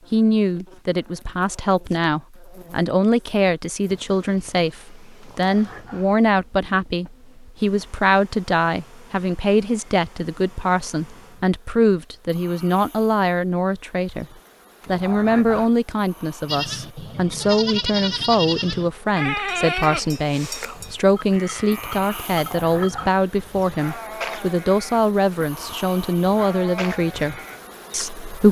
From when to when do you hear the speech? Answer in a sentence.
You can hear the speech from 0.1 to 14.2 s and from 14.8 to 28.4 s.